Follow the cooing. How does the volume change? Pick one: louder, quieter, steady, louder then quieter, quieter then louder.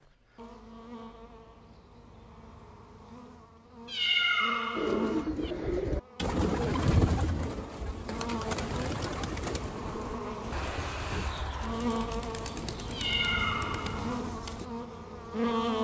quieter.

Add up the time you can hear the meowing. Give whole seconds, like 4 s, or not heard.
3 s.